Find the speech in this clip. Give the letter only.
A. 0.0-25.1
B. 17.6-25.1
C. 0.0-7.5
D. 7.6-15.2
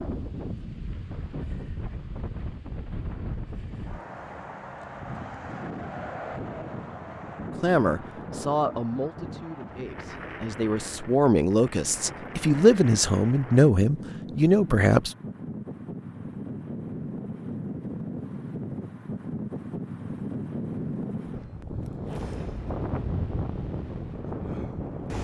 D.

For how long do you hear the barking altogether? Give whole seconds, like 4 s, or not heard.
not heard.